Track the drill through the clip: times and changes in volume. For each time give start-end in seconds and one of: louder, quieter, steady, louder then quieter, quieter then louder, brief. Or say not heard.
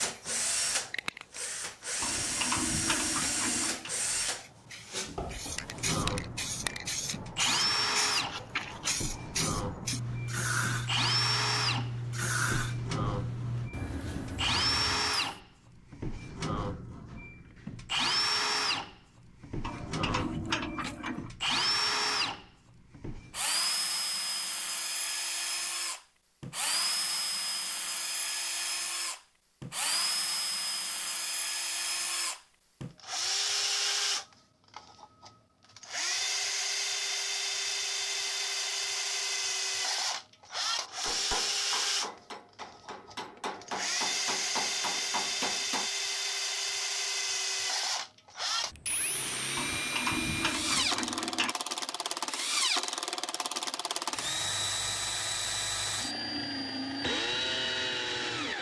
0.0-58.5 steady.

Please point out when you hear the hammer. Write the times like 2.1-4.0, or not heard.
40.8-45.9.